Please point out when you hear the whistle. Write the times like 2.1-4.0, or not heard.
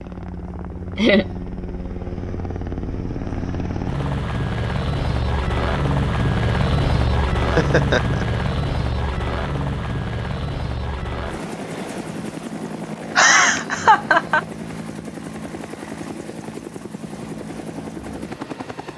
not heard.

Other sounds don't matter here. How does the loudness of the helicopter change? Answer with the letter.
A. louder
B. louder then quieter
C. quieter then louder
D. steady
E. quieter
B.